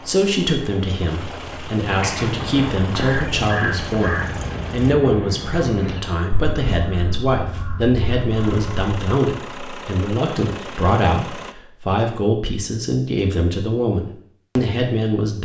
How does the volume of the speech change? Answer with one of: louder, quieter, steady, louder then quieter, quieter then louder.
steady.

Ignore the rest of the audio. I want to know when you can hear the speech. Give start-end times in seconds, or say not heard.
0.1-15.4.